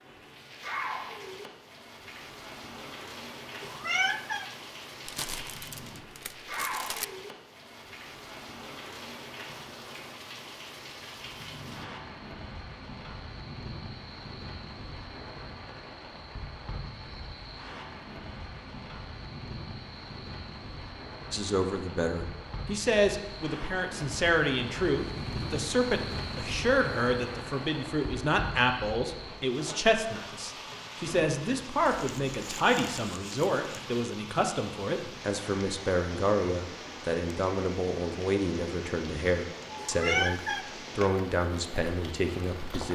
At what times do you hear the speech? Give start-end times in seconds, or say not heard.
21.3-42.8.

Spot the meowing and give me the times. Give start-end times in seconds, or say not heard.
3.6-4.5, 39.8-40.6.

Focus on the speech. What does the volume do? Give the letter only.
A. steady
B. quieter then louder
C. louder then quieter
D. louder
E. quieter
A.